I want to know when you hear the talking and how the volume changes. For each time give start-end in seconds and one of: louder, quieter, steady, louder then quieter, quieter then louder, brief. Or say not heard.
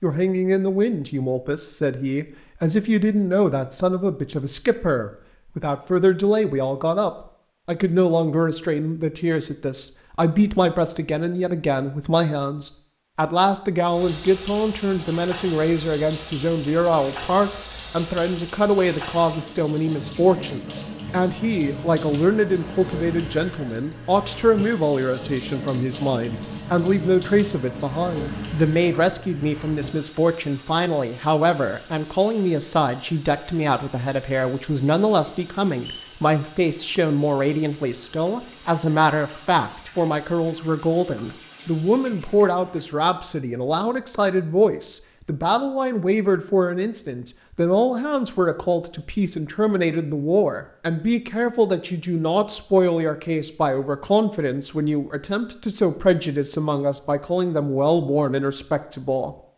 0.0-59.4 steady.